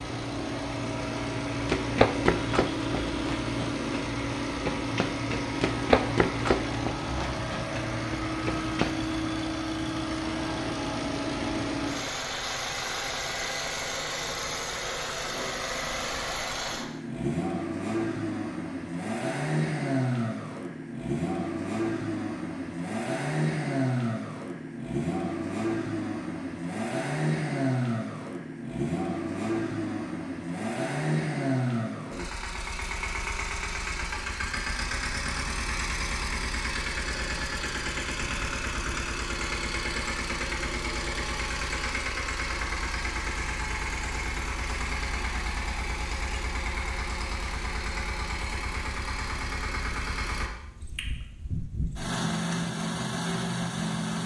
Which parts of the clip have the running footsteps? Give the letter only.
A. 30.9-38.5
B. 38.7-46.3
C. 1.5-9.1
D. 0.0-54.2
C.